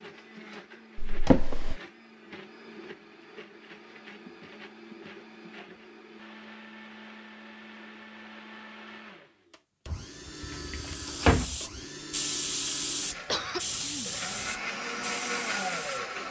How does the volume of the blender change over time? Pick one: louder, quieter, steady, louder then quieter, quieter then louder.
louder.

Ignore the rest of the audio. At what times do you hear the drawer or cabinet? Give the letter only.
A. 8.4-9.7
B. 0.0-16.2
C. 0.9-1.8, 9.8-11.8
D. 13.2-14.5
C.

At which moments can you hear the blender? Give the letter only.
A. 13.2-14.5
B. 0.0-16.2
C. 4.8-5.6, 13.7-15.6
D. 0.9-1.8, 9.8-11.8
B.